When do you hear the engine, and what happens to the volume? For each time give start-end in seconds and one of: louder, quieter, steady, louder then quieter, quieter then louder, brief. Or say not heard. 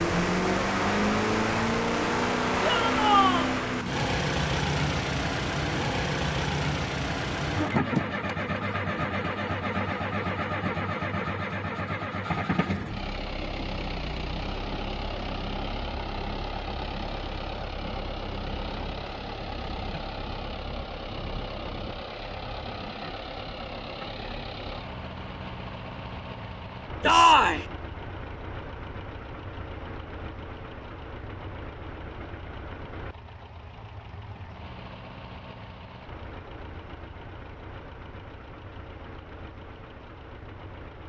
0.0-41.0 quieter.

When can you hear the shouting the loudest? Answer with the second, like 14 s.
27 s.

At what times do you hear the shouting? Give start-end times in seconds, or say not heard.
2.6-3.5, 27.0-27.6.